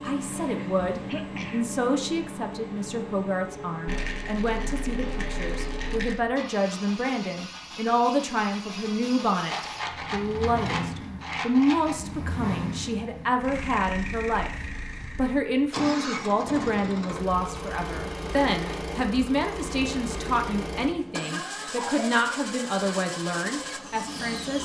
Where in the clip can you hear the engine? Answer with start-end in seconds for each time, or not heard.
0.0-24.6.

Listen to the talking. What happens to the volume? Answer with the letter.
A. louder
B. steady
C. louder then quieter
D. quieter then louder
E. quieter
B.